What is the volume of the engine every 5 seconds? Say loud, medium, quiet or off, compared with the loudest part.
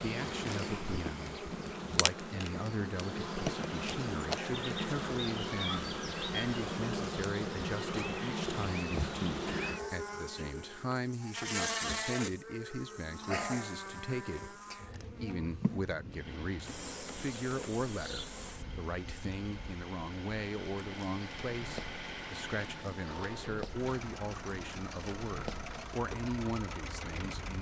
off, off, off, medium, loud, loud.